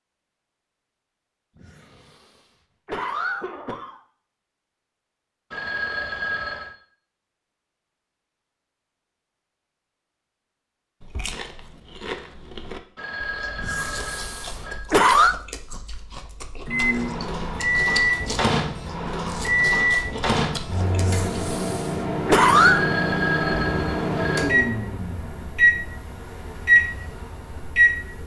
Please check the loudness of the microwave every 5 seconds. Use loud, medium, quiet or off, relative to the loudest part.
off, off, off, loud, loud, loud.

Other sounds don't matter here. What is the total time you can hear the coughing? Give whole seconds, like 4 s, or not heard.
6 s.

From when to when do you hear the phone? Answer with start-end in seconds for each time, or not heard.
5.5-6.8, 12.9-14.8, 22.6-24.4.